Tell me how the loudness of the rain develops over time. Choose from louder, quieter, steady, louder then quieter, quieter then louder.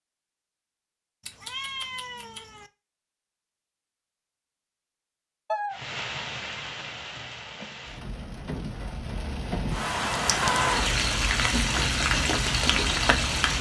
louder.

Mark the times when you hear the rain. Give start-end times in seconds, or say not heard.
5.7-13.5.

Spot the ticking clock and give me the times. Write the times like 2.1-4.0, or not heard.
not heard.